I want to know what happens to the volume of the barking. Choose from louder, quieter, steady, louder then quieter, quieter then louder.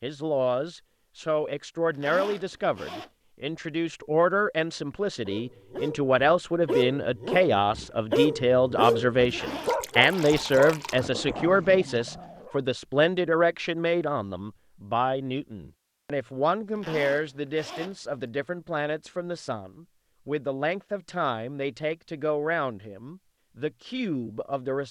quieter.